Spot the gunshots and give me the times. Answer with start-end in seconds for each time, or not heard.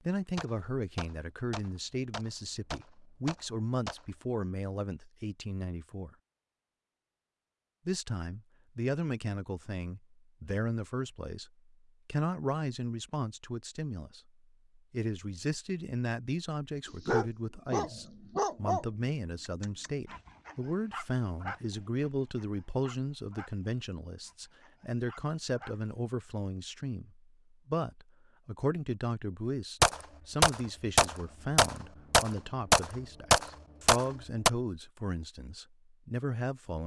0.3-4.0, 29.8-34.5.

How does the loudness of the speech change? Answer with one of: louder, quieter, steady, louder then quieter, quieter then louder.
steady.